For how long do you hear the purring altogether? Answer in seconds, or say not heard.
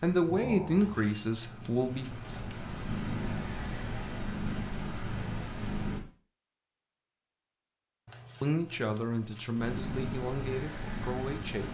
8 s.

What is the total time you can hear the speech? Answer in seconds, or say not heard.
5 s.